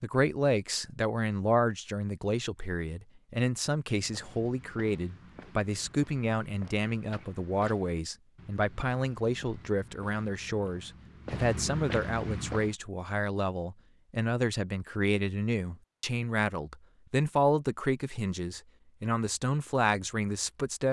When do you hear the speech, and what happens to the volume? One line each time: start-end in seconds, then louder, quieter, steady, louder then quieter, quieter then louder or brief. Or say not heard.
0.0-20.8 steady.